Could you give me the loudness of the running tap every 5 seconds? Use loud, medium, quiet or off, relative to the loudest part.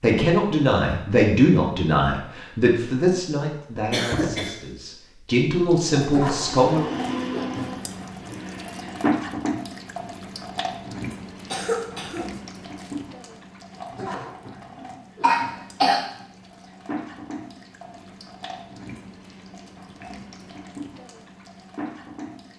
off, loud, medium, medium, medium.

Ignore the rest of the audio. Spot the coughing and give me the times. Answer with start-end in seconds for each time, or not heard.
3.9-4.5, 11.5-12.9, 15.2-16.0.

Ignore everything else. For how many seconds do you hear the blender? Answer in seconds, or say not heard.
3 s.